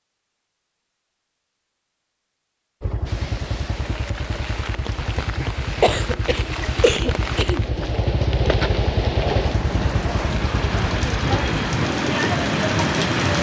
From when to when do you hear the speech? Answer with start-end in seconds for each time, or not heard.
not heard.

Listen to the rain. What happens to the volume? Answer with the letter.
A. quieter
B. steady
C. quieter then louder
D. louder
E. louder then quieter
D.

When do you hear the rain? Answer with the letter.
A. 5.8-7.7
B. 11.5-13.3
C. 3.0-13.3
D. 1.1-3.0
C.